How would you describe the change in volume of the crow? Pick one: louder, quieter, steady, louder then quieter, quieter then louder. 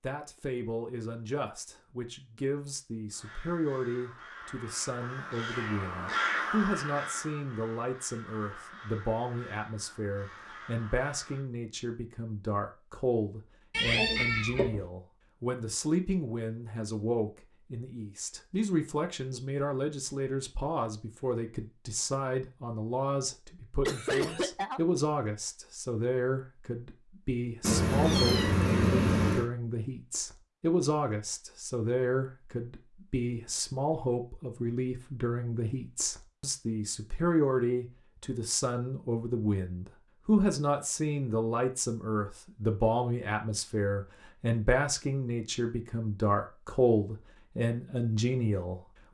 louder then quieter.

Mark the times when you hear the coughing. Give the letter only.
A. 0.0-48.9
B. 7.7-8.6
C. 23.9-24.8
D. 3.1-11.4
C.